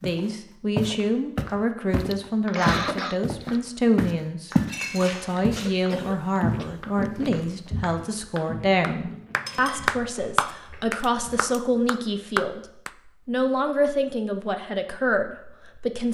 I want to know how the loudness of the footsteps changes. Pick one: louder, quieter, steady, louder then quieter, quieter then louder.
quieter.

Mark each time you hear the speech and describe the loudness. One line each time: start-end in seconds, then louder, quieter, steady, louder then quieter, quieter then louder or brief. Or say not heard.
0.0-12.6 steady
13.2-16.0 brief.